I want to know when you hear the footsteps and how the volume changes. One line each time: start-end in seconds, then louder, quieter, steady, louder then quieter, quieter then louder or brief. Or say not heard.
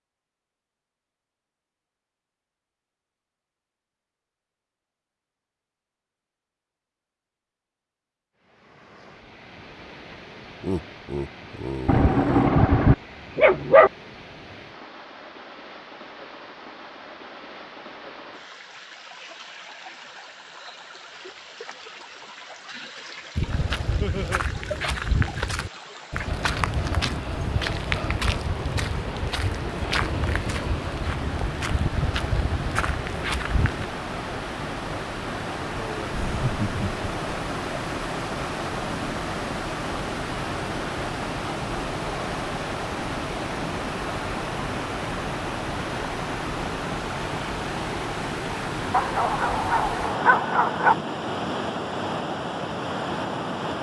23.4-33.9 steady.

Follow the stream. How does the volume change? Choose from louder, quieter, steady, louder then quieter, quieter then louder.
louder.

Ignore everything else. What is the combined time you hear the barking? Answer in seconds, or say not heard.
4 s.